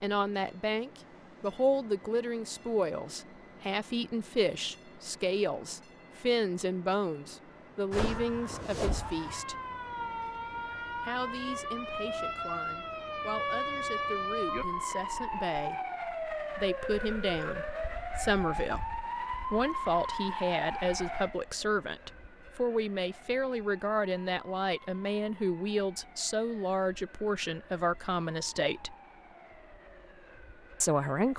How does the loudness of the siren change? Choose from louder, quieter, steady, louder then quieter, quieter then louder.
quieter.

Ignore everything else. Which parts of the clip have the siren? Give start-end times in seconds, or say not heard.
7.9-31.3.